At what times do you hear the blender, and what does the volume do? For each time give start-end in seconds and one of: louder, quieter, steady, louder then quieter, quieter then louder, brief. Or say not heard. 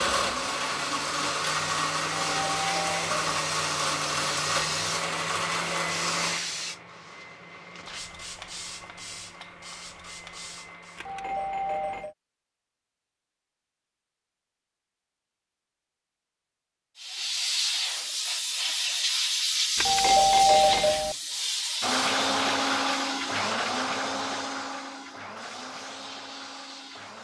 0.0-12.0 quieter
21.8-27.1 quieter.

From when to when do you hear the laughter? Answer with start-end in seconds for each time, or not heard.
not heard.